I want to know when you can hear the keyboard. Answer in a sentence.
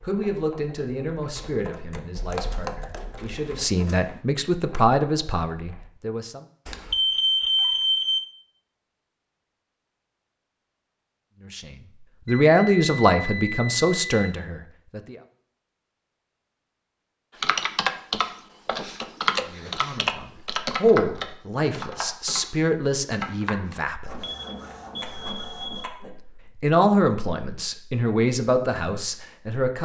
You can hear the keyboard from 0.0 to 5.8 s and from 17.4 to 23.8 s.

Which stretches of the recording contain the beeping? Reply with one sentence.
You can hear the beeping from 6.7 to 8.2 s, from 12.2 to 14.3 s and from 24.2 to 26.1 s.